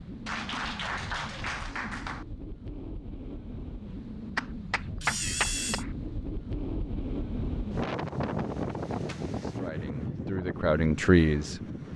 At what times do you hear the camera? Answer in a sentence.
You can hear the camera from 5.0 to 5.8 s.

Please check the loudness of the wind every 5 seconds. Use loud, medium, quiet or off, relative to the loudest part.
medium, loud, loud.